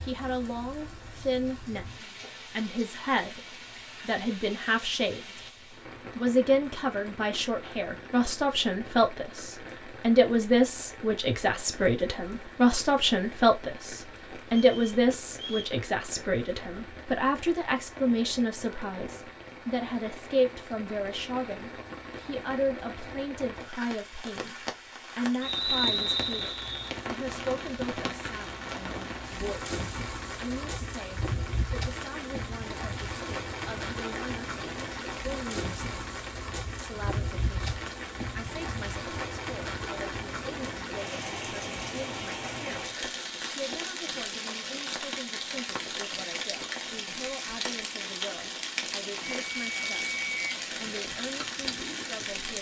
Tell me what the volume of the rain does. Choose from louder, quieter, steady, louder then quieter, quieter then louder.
louder.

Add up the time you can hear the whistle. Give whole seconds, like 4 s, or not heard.
4 s.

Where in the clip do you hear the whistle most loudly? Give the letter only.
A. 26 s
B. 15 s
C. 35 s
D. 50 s
A.